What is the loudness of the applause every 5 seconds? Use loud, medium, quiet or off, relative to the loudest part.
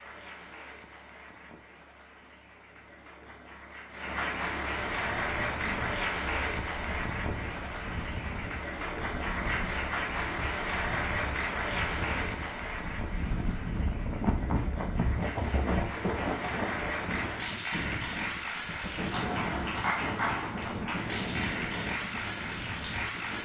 medium, loud, loud, loud, loud.